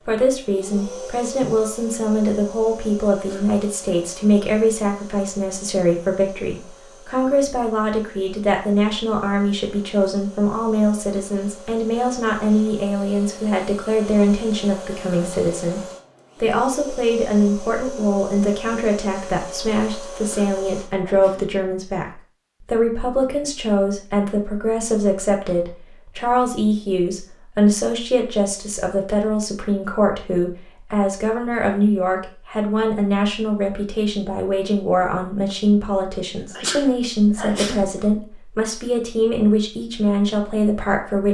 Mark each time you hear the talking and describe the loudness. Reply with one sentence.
The talking can be heard from 0.0 to 15.8 s, at a steady volume; and from 16.4 to 41.3 s, at a steady volume.